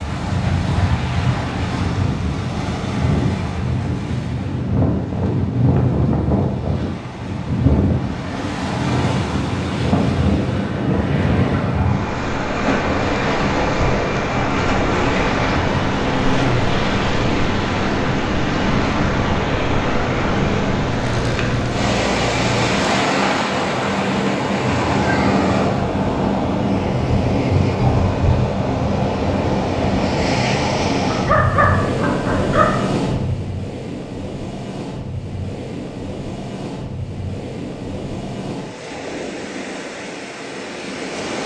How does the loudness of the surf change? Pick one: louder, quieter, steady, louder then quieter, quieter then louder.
quieter.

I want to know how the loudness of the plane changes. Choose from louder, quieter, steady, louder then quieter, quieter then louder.
steady.